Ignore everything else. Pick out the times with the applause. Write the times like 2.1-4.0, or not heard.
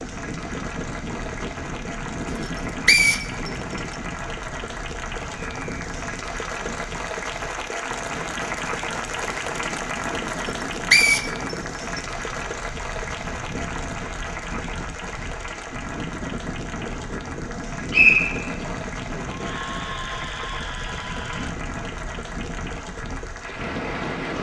0.0-24.3.